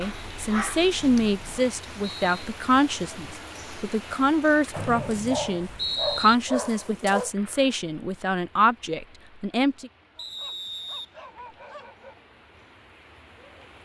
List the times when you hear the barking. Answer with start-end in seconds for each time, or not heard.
0.0-1.4, 4.7-7.3, 10.2-12.2.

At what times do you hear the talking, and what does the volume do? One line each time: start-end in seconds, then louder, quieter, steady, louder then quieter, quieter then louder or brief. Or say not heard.
0.0-9.9 steady.